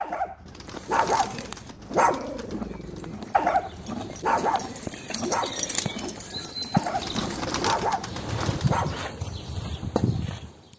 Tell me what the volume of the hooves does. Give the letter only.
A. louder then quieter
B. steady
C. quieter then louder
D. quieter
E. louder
E.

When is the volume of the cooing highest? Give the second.
8 s.